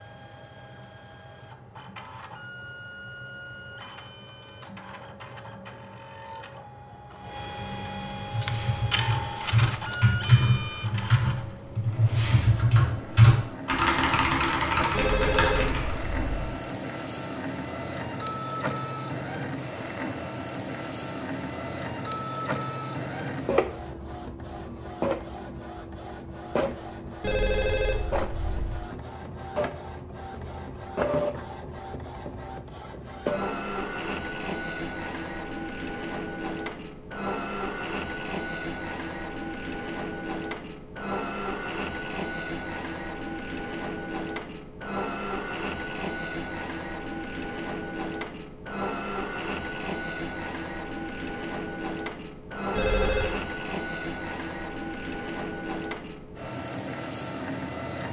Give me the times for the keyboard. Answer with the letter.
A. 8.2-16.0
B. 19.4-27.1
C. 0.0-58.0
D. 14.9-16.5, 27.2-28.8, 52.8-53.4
A.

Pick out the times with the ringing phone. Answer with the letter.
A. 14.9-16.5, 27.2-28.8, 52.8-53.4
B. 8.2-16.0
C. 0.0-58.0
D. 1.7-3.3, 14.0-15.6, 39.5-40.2
A.